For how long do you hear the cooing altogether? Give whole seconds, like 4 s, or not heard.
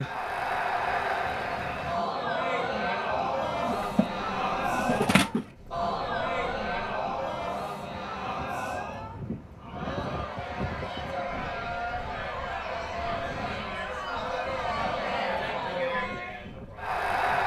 2 s.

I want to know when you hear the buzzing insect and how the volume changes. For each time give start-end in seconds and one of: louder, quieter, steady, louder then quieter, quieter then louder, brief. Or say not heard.
not heard.